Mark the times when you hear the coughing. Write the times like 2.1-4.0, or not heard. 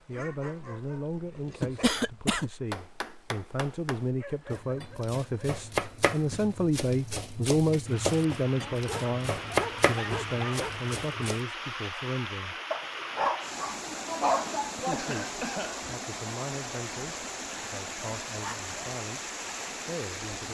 1.6-2.5, 13.8-15.8.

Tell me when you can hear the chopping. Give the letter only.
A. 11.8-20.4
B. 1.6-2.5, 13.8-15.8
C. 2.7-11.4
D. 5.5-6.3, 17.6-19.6
C.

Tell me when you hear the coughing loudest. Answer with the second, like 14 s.
2 s.